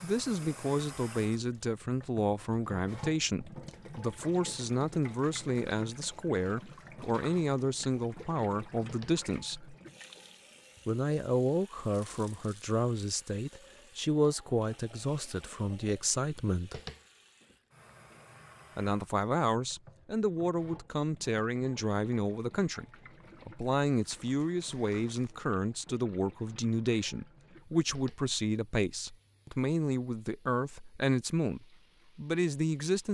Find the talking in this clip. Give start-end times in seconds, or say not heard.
0.0-9.8, 10.8-16.8, 18.8-33.0.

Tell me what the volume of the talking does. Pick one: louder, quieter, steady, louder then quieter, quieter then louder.
steady.